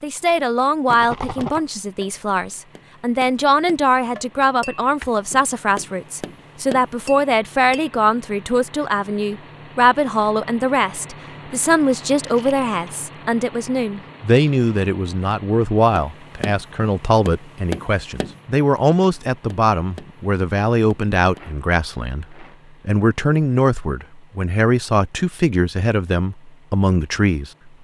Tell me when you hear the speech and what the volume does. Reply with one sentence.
The speech can be heard from 0.0 to 27.7 s, at a steady volume.